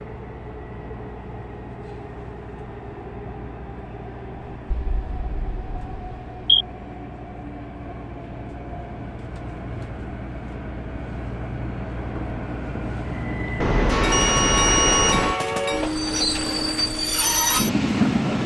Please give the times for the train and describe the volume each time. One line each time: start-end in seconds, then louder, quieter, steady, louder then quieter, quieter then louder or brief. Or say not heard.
0.0-18.4 louder.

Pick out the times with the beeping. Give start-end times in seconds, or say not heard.
4.7-6.7, 13.6-15.3.